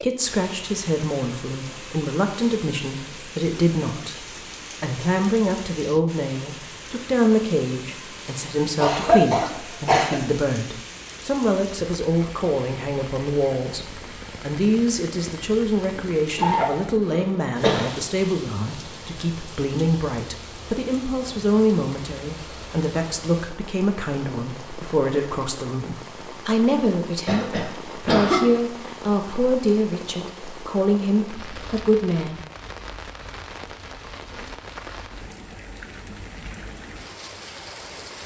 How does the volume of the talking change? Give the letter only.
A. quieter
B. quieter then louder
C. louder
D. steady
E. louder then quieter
D.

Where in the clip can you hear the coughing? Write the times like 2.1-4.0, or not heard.
8.8-10.2, 15.9-17.9, 27.2-28.4.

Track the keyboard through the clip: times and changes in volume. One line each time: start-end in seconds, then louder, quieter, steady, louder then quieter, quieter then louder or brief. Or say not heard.
not heard.